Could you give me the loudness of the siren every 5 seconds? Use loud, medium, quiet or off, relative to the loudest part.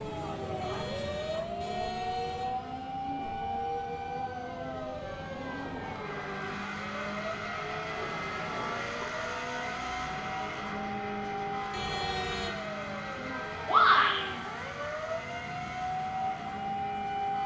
loud, medium, medium, loud.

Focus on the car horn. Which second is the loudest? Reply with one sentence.
The volume of the car horn peaks at 12 seconds.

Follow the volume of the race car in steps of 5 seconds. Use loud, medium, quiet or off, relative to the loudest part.
medium, loud, loud, medium.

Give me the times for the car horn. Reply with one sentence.
The car horn can be heard from 0.6 to 2.5 s, from 7.8 to 8.9 s and from 11.7 to 12.7 s.